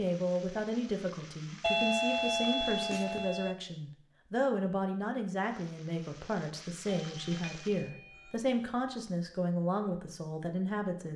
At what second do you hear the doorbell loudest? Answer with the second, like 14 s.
2 s.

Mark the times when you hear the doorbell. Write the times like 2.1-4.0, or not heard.
1.6-3.5, 6.8-8.3.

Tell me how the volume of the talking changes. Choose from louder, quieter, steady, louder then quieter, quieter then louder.
steady.